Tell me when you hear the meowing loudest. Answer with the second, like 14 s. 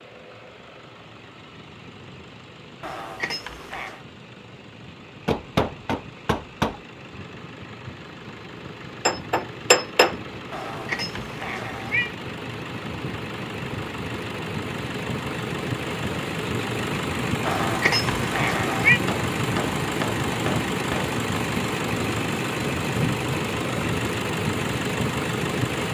19 s.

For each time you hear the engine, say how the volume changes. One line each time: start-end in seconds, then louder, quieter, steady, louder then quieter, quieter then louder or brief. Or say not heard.
0.0-25.8 louder.